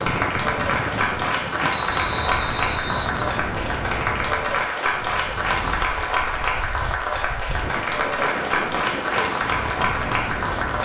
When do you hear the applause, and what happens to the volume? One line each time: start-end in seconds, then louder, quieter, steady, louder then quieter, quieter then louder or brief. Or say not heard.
0.0-10.7 steady.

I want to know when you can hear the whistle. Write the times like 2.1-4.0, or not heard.
1.7-3.2.